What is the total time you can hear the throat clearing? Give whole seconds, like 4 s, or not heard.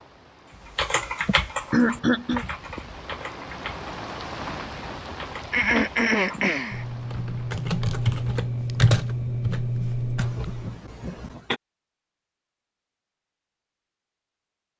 4 s.